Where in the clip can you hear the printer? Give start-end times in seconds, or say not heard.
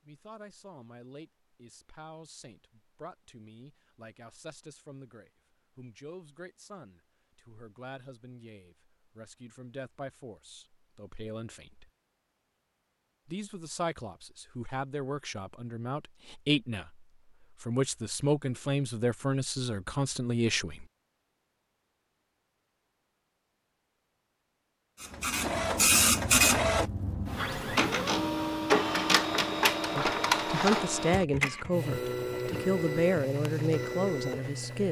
25.0-34.8.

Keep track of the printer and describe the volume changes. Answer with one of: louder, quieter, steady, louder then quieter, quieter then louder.
quieter.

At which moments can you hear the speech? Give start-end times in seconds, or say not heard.
0.1-11.9, 13.2-20.9, 29.9-34.8.